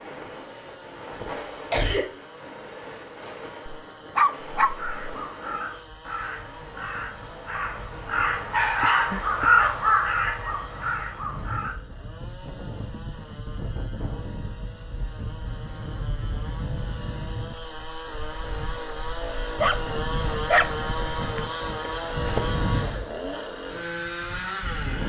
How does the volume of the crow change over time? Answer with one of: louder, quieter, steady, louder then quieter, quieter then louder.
louder then quieter.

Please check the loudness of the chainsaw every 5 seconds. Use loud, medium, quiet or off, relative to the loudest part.
quiet, quiet, quiet, medium, loud.